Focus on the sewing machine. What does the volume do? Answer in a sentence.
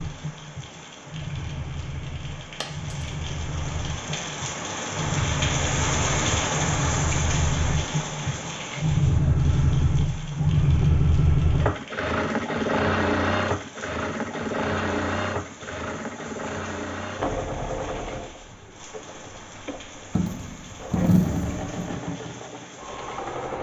The loudness of the sewing machine goes up, then down.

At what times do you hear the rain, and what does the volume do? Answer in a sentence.
You can hear the rain from 0.0 to 23.5 s, getting louder then quieter.